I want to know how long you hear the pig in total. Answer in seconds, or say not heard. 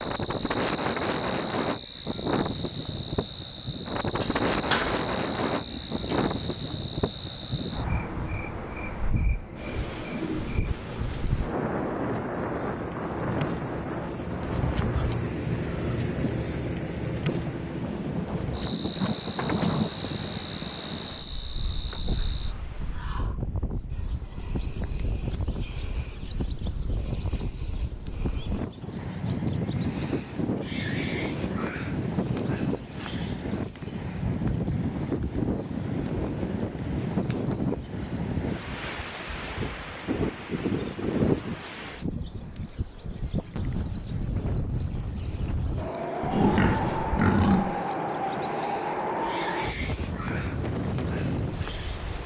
4 s.